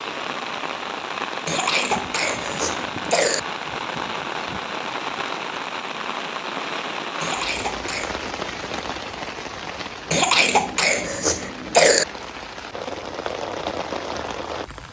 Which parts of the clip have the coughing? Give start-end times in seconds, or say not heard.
1.4-3.4, 7.2-8.2, 10.1-12.1.